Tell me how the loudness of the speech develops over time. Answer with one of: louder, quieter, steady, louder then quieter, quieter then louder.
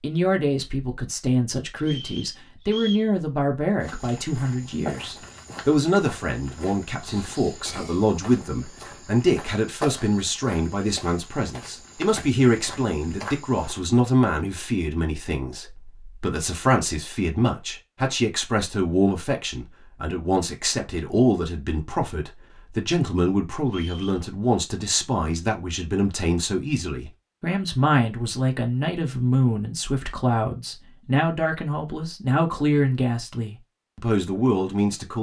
steady.